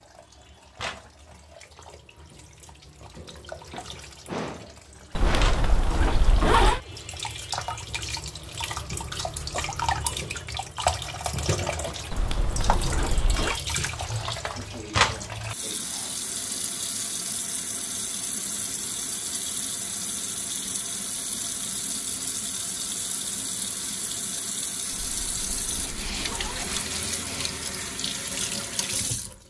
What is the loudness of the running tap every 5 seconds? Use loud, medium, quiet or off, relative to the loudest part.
quiet, loud, loud, loud, loud, loud.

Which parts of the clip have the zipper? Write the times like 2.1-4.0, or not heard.
5.2-6.8, 12.1-13.6, 24.9-26.9.